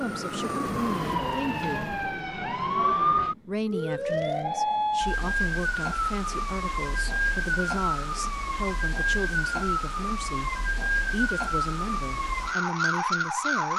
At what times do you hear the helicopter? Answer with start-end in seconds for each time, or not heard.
0.0-2.0.